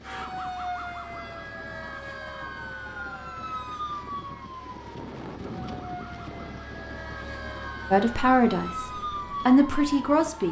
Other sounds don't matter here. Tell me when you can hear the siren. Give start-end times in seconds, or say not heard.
0.0-10.4.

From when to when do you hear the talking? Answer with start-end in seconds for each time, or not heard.
7.9-8.8, 9.4-10.4.